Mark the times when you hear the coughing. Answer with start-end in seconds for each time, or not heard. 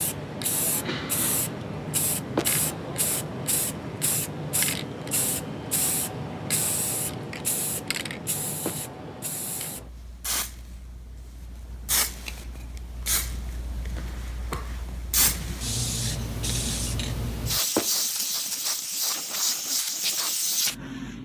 not heard.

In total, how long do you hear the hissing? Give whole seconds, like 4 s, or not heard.
21 s.